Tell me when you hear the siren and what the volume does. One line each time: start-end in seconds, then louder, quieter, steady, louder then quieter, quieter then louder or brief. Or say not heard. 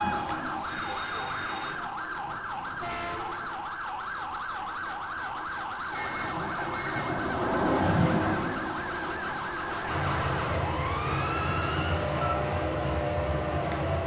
0.0-14.0 steady.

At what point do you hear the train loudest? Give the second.
8 s.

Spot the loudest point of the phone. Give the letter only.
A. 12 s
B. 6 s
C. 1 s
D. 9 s
B.